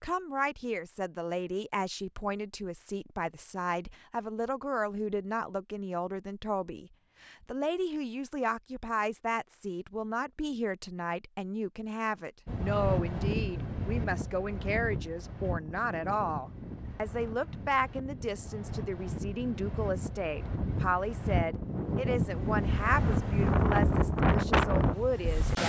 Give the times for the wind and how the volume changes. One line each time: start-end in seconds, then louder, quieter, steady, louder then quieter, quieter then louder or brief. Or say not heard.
12.4-25.6 quieter then louder.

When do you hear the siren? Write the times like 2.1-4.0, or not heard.
not heard.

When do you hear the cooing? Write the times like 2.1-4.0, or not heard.
not heard.